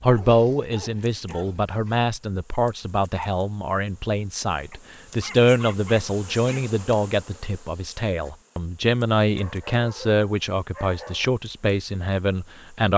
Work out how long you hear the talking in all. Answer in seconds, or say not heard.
13 s.